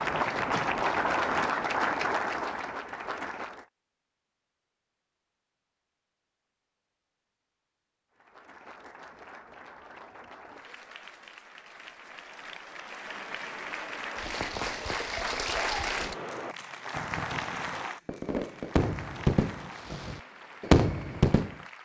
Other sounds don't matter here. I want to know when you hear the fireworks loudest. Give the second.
21 s.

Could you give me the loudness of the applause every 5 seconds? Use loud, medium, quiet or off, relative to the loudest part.
loud, quiet, medium, medium, quiet.